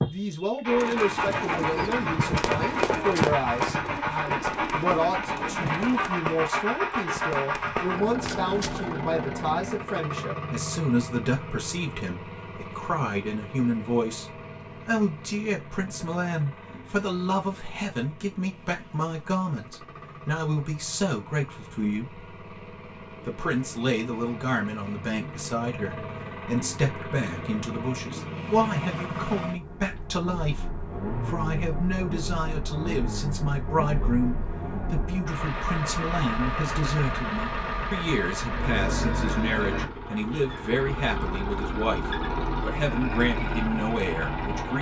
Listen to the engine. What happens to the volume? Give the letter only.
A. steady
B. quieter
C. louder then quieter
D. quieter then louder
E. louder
D.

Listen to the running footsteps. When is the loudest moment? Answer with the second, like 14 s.
3 s.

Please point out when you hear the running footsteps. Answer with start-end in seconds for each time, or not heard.
2.4-8.9.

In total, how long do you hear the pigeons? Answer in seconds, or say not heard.
5 s.